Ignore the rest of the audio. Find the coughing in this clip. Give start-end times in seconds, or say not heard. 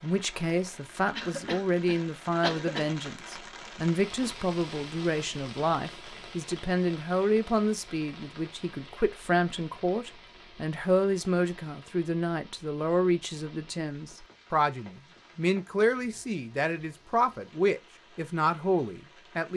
1.1-2.9.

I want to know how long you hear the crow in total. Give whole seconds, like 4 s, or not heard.
not heard.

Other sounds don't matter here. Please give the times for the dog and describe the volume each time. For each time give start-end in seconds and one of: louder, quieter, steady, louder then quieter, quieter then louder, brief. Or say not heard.
not heard.